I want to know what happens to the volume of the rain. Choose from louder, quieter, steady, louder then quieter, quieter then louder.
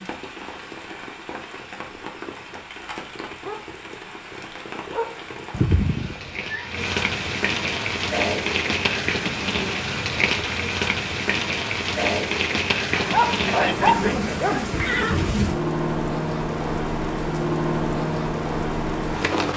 louder.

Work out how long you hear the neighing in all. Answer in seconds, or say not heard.
3 s.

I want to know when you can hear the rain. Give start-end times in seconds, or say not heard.
0.0-19.5.